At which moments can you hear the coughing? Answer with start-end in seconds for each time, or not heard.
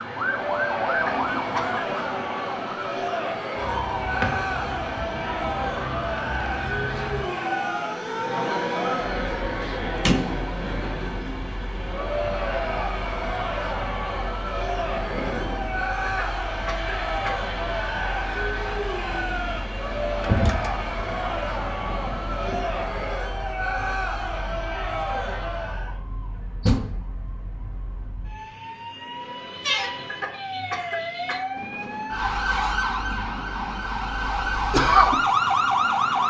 1.1-1.9, 16.1-17.4, 30.0-31.6.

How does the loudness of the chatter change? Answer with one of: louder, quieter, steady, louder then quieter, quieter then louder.
steady.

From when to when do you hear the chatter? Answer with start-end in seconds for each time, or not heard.
0.1-26.0.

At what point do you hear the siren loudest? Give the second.
35 s.